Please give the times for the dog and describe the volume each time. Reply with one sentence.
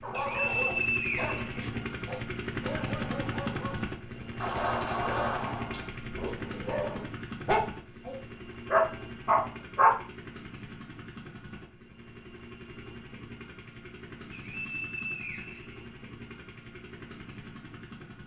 The dog can be heard from 0.0 to 9.9 s, getting louder.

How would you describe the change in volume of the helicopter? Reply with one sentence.
The loudness of the helicopter goes down.